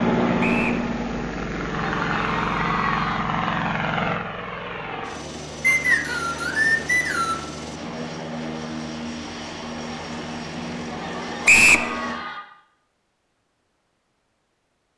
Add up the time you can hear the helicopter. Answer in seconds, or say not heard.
12 s.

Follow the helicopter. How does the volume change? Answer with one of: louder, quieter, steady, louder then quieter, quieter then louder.
quieter.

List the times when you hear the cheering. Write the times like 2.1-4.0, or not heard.
1.6-3.2, 10.9-12.4.